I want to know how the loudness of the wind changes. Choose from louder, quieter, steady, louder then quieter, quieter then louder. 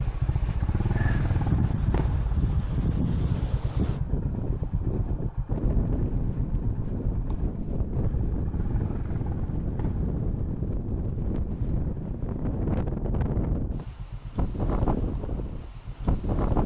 steady.